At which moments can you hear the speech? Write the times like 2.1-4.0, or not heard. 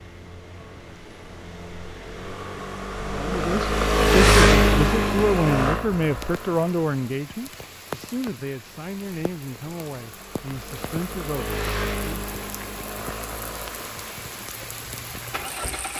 3.1-12.2.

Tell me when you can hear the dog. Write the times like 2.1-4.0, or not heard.
not heard.